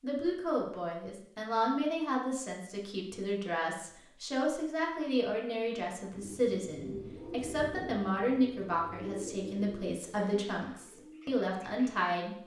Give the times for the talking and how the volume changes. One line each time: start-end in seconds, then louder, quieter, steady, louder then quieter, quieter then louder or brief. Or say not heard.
0.0-12.3 steady.